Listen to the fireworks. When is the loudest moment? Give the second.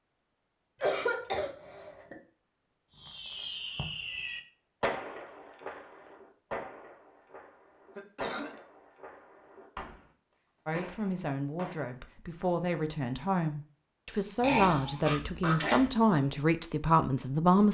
5 s.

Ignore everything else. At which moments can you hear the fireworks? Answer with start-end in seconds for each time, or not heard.
3.0-11.8.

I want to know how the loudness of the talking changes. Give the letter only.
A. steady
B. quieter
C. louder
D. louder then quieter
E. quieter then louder
C.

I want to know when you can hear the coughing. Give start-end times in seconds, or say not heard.
0.8-2.1, 8.0-8.6, 14.4-15.9.